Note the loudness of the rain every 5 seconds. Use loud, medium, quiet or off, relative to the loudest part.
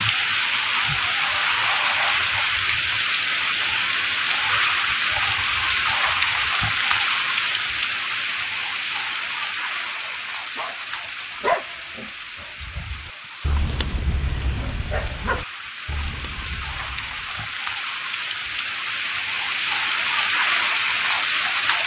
loud, loud, quiet, medium, loud.